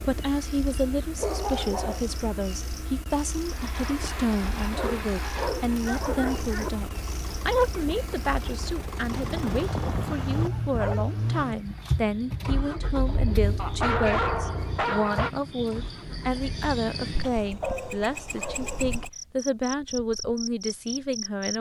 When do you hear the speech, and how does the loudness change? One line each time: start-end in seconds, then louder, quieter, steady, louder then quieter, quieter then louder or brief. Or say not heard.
0.0-21.5 steady.